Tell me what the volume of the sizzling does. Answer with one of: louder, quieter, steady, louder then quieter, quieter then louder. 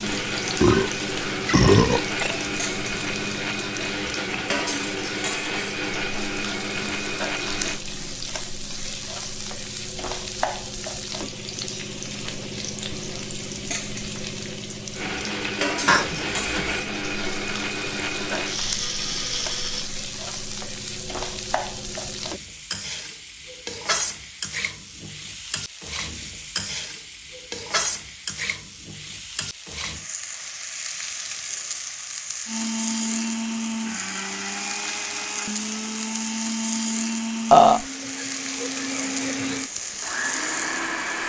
steady.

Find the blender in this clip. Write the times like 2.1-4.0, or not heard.
0.0-7.8, 14.9-19.9, 32.5-41.2.